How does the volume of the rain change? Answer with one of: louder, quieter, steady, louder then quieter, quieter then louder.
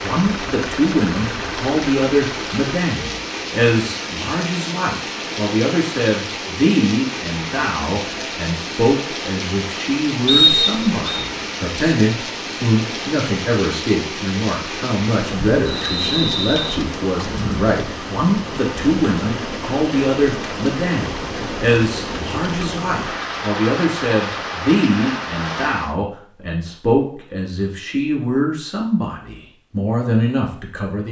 steady.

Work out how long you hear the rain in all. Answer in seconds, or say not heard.
26 s.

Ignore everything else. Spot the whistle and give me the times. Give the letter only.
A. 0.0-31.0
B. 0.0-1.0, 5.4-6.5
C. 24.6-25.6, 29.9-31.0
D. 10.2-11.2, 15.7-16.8
D.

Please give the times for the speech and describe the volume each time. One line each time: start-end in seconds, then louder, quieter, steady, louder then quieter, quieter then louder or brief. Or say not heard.
0.0-31.0 steady.